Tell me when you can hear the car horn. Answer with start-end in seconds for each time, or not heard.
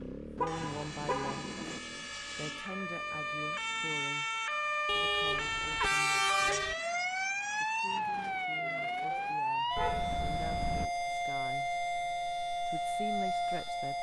0.3-1.8, 4.8-6.8, 9.8-10.9.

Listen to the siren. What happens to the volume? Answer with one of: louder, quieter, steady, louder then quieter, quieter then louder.
louder.